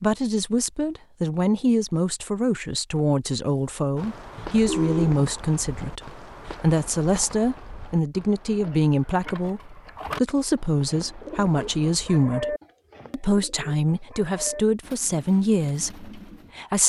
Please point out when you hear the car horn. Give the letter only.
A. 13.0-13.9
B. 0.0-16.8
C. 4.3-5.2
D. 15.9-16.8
C.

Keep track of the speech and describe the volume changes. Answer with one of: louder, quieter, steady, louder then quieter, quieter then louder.
steady.